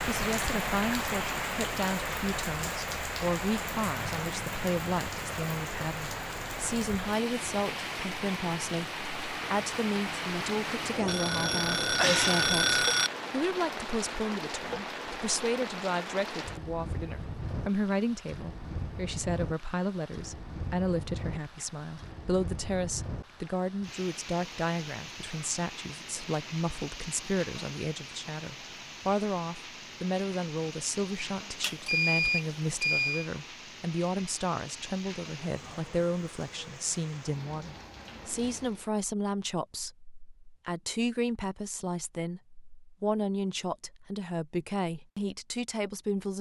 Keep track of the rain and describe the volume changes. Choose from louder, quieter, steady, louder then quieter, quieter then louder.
quieter.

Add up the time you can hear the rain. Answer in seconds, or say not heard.
39 s.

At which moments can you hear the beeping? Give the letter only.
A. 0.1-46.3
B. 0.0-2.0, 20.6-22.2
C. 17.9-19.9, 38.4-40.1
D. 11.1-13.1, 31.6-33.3
D.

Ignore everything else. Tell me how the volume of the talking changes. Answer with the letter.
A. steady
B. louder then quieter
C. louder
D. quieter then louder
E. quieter
A.